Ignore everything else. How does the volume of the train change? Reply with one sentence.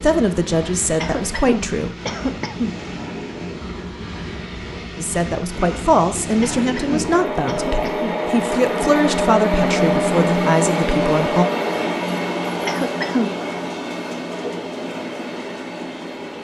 The volume of the train goes up, then down.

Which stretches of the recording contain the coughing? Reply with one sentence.
You can hear the coughing from 1.0 to 2.8 s, from 6.4 to 8.2 s and from 12.7 to 13.3 s.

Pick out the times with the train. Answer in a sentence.
You can hear the train from 0.0 to 16.3 s.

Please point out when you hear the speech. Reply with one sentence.
The speech can be heard from 0.0 to 1.9 s and from 5.0 to 11.4 s.